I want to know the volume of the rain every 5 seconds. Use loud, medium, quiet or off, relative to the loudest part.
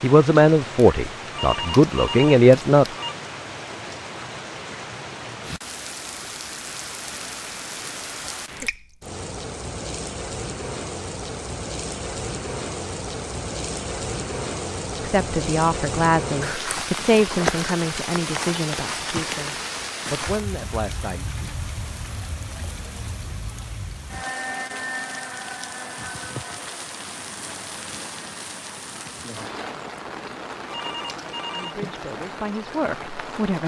medium, medium, loud, loud, medium, medium, medium.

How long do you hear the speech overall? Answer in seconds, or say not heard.
11 s.